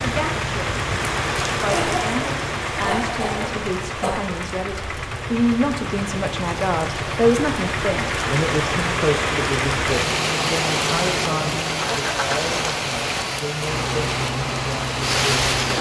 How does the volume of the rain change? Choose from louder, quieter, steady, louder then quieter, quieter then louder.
quieter then louder.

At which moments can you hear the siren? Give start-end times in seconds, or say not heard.
not heard.